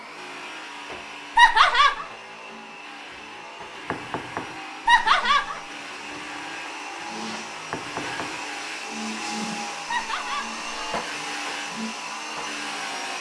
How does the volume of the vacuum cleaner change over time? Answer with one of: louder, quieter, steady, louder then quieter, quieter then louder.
louder.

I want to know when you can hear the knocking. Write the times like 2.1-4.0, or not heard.
3.9-4.6, 7.7-8.4.